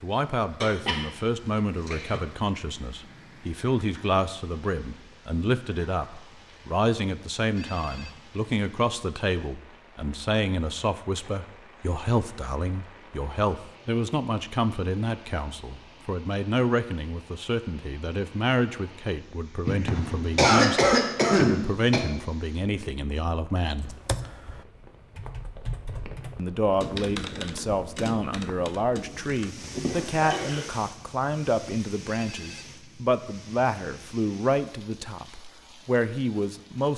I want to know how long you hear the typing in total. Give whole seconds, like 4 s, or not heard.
6 s.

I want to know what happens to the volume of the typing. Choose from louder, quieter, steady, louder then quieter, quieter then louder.
louder then quieter.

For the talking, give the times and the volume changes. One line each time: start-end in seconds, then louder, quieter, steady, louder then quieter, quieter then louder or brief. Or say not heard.
0.0-23.9 steady
26.4-36.9 steady.